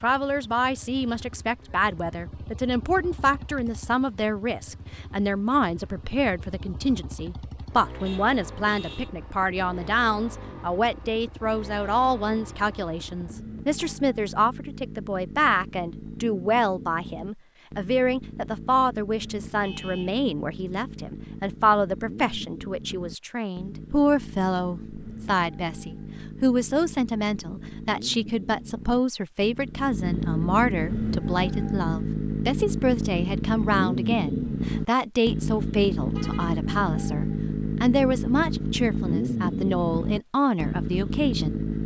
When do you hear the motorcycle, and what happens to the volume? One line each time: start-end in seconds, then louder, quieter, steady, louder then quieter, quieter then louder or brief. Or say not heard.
0.0-41.8 louder.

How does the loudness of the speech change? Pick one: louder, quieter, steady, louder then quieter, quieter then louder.
steady.